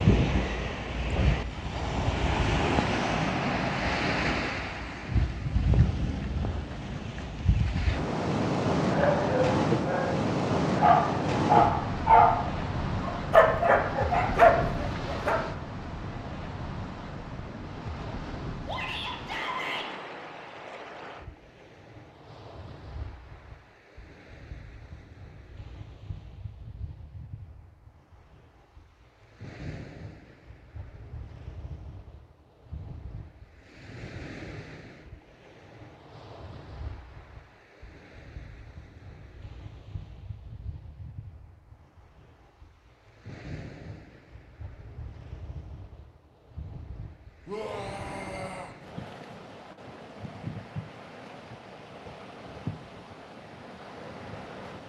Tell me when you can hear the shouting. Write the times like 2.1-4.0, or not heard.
18.6-19.9, 47.5-48.8.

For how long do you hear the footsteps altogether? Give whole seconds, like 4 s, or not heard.
not heard.